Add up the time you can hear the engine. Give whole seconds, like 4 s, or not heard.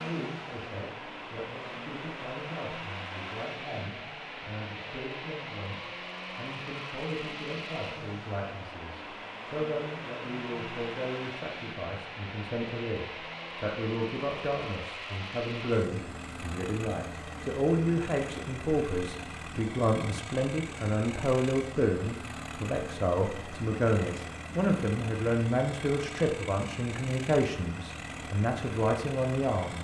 30 s.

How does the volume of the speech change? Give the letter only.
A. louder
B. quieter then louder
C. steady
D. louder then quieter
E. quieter
A.